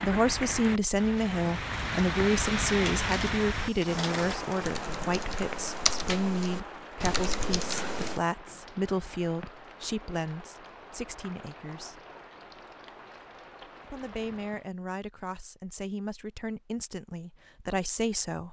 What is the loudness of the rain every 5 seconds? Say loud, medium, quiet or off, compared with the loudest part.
loud, medium, quiet, off.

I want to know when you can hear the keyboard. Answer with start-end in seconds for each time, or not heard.
3.0-8.2.